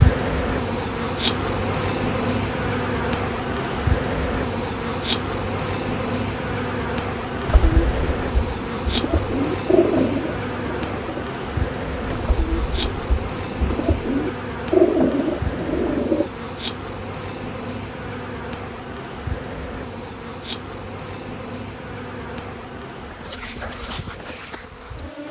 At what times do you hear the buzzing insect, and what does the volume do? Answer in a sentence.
You can hear the buzzing insect from 0.0 to 25.2 s, getting quieter.